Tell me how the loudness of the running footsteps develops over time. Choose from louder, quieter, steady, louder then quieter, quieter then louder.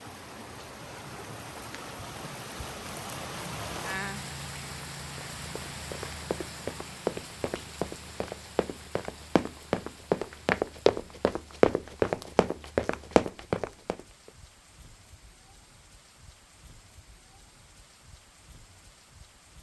louder.